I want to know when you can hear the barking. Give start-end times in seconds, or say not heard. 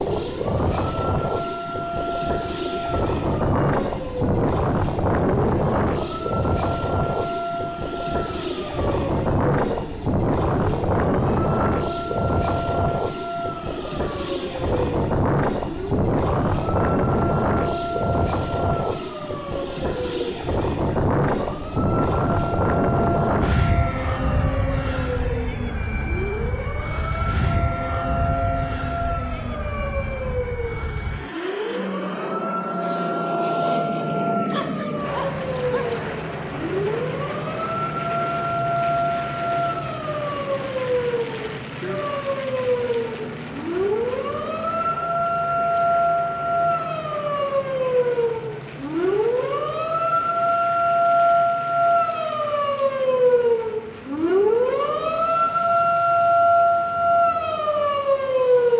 34.5-36.1.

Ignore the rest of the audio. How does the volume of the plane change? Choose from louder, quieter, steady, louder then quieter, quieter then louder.
quieter.